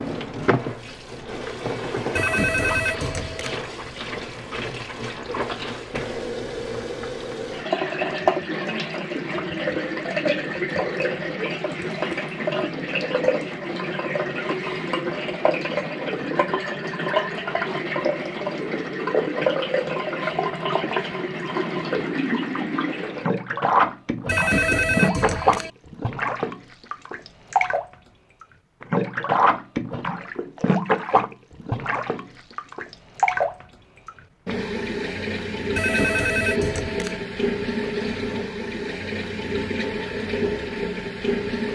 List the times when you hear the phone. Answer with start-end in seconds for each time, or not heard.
2.1-3.6, 24.2-25.7, 35.8-37.2.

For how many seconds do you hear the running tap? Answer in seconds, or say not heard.
42 s.